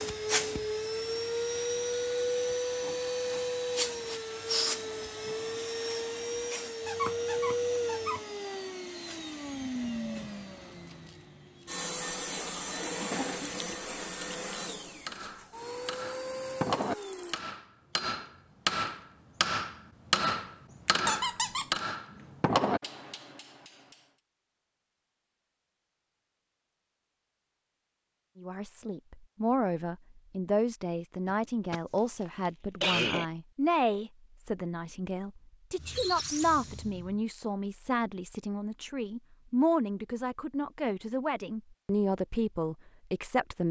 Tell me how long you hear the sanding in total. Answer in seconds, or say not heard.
not heard.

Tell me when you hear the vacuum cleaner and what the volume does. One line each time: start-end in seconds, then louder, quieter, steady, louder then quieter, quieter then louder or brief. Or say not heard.
0.0-17.4 quieter.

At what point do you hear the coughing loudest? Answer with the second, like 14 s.
33 s.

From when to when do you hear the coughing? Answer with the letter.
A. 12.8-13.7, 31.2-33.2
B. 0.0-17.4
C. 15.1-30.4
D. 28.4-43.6
A.